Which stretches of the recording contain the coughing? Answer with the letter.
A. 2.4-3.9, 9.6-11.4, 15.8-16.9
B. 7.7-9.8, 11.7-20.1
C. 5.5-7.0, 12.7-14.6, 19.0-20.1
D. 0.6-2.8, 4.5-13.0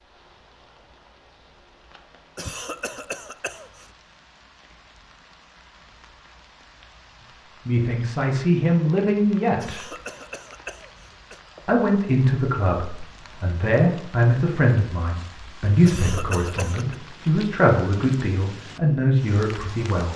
A.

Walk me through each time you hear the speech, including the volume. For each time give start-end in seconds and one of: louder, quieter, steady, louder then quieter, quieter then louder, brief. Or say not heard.
7.7-9.8 brief
11.7-20.1 steady.